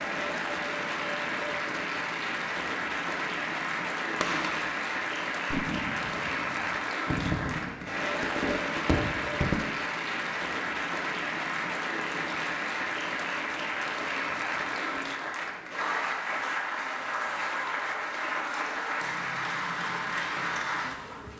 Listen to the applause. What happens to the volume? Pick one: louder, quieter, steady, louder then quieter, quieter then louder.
steady.